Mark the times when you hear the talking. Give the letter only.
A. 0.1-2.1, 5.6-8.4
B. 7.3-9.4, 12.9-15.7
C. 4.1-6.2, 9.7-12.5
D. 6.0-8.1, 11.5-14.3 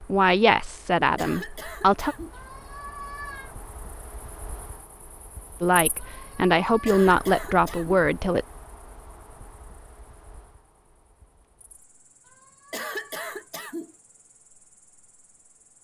A.